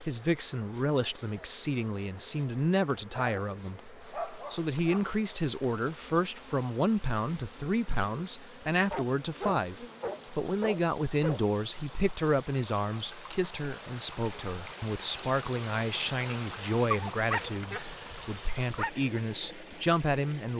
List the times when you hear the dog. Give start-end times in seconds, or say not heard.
3.1-5.0, 8.9-11.5, 16.9-18.9.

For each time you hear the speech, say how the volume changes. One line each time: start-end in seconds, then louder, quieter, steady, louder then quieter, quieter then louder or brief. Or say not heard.
0.0-20.5 steady.